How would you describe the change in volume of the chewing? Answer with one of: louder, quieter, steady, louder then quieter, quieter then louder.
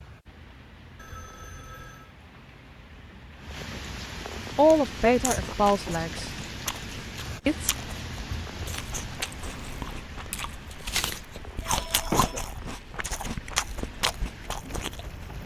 louder.